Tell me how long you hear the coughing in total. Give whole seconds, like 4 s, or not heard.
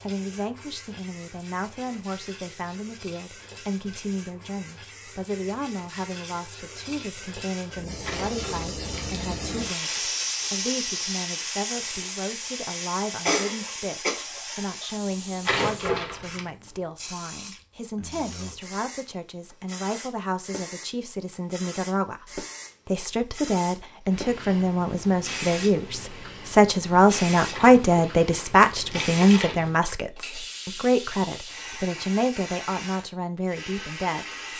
2 s.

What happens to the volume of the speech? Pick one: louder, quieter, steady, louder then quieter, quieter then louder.
louder.